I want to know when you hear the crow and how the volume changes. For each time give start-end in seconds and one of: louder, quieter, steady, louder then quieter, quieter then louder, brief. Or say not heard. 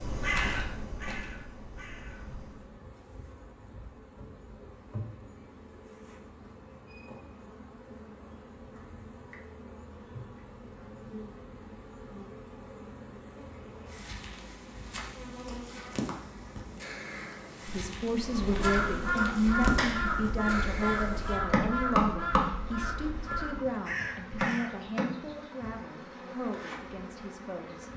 0.0-2.7 brief
18.2-24.8 quieter.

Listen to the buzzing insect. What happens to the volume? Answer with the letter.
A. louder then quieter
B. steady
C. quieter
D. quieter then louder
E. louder
E.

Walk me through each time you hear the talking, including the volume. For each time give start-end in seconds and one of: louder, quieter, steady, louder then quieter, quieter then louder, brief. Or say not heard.
17.6-27.9 quieter.